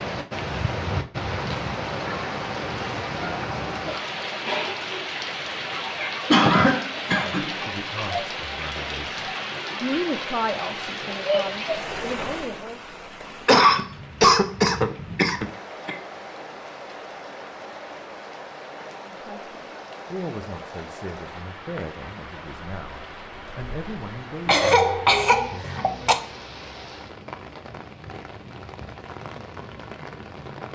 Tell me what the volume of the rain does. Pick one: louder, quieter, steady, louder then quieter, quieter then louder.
quieter.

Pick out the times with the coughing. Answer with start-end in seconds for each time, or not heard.
6.3-7.5, 13.4-15.9, 24.4-26.1.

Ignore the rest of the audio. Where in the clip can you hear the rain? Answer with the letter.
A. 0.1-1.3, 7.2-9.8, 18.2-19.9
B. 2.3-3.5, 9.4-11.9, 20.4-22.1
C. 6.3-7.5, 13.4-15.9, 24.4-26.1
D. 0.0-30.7
D.